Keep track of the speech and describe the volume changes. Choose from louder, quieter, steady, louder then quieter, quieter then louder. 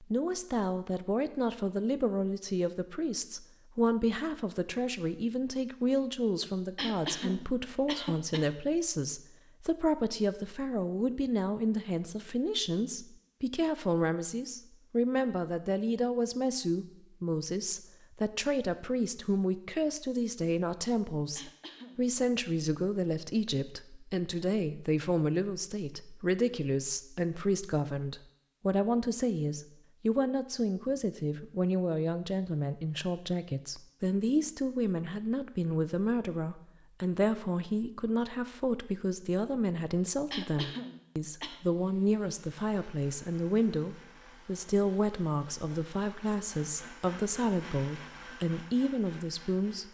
steady.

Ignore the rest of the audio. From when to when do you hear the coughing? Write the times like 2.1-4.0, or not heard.
6.8-8.5, 21.4-22.1, 40.3-41.6.